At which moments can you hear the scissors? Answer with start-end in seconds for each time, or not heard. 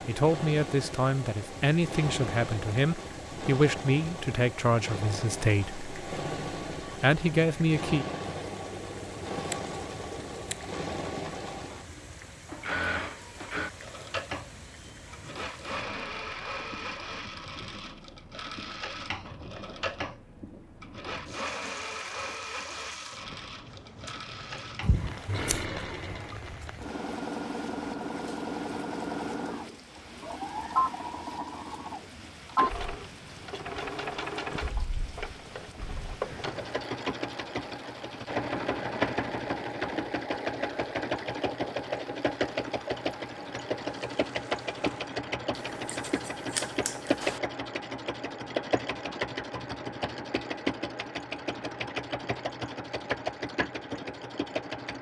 8.3-10.7, 24.8-25.6, 45.5-47.4.